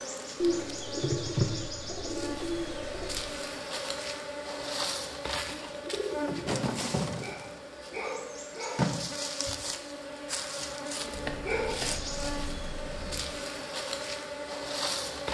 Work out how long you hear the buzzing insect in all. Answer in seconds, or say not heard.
15 s.